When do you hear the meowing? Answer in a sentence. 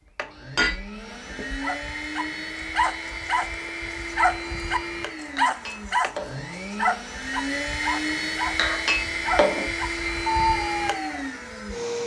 You can't hear the meowing here.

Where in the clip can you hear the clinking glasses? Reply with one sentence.
You can hear the clinking glasses from 0.6 to 1.6 s, from 5.3 to 6.5 s and from 8.6 to 9.7 s.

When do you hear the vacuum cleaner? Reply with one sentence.
The vacuum cleaner can be heard from 0.0 to 12.0 s.